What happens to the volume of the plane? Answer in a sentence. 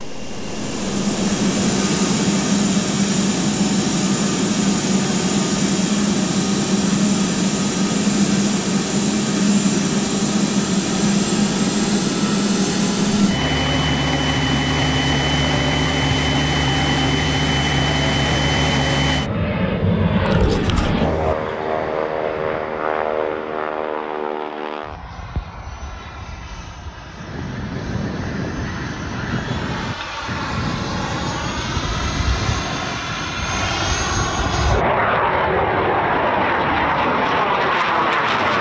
The volume of the plane goes down, then up.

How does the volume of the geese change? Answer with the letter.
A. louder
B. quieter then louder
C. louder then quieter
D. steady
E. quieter
E.